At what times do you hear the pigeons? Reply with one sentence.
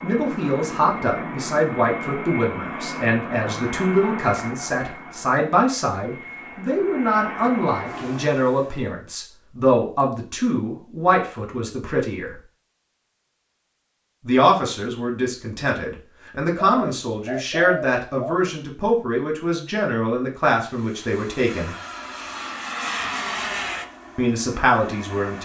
You can hear the pigeons from 16.6 to 18.5 s.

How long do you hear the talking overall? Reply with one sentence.
The talking can be heard for 21 seconds in total.